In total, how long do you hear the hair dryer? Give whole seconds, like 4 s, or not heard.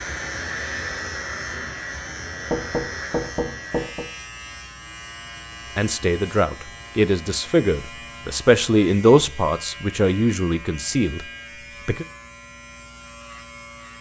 3 s.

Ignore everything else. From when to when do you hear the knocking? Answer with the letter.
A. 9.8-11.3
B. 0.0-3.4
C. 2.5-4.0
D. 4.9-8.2
C.